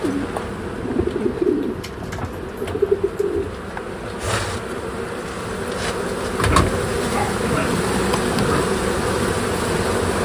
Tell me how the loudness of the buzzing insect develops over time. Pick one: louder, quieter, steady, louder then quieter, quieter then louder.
louder.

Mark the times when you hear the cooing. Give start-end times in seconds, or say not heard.
0.0-3.5.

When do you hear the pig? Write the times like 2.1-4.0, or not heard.
6.5-8.8.